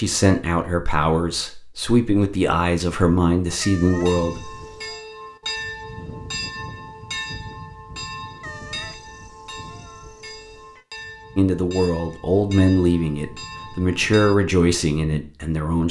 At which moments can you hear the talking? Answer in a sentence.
The talking can be heard from 0.0 to 4.5 s and from 11.3 to 15.8 s.